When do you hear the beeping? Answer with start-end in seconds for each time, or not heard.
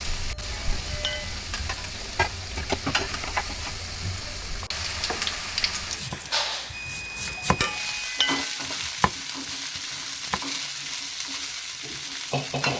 0.2-1.4, 6.7-8.3.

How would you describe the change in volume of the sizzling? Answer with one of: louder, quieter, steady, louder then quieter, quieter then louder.
steady.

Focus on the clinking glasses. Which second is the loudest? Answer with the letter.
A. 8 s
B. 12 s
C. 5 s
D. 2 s
A.